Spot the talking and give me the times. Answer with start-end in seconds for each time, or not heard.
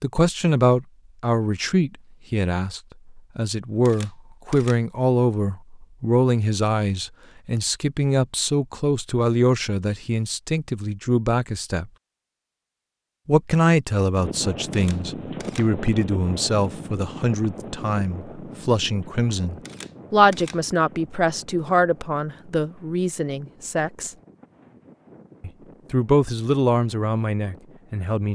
0.0-11.9, 13.2-24.1, 25.4-28.3.